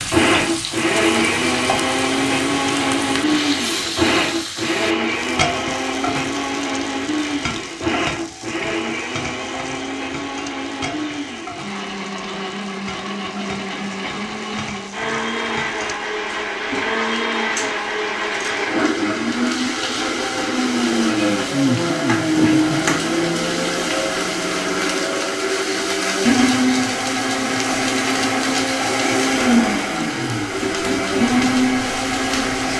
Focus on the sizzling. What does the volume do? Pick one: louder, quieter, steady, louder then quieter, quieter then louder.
quieter then louder.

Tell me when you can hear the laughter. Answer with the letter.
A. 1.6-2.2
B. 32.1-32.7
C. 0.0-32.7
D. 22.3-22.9
D.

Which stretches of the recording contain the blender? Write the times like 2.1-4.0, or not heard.
0.0-32.7.